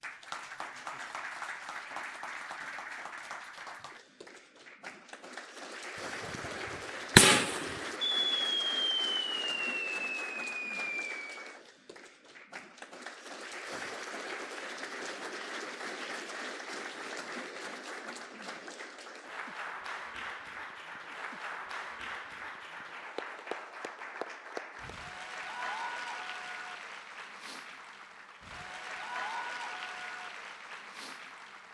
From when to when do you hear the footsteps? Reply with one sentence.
You can't hear the footsteps here.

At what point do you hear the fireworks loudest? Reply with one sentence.
The volume of the fireworks peaks at 7 seconds.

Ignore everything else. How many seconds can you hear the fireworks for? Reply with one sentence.
The fireworks can be heard for 5 seconds in total.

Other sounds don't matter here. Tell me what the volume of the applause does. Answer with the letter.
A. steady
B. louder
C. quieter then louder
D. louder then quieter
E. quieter
A.